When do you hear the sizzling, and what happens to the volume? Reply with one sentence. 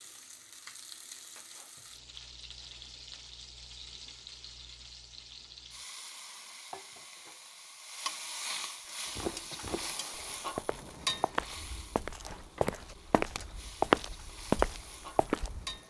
You can hear the sizzling from 0.0 to 15.8 s, getting louder then quieter.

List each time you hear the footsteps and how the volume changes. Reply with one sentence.
You can hear the footsteps from 9.1 to 15.8 s, getting louder.